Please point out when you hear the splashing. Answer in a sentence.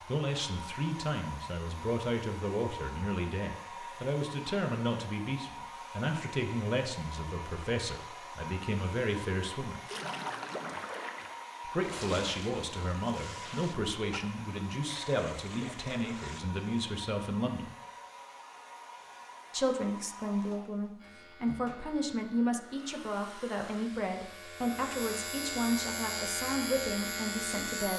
The splashing can be heard from 9.8 to 16.4 s.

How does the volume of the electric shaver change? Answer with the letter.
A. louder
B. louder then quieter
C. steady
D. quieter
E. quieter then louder
A.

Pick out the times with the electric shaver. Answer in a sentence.
The electric shaver can be heard from 20.9 to 27.9 s.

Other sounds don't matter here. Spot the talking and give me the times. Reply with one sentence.
The talking can be heard from 0.1 to 9.8 s, from 11.7 to 17.7 s and from 19.5 to 27.9 s.